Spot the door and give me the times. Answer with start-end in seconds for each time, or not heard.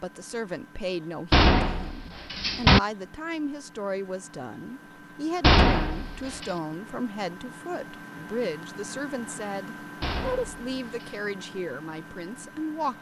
1.3-2.8, 5.4-6.5, 10.0-11.2.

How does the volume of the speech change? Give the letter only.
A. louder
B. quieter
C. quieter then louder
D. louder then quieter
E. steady
E.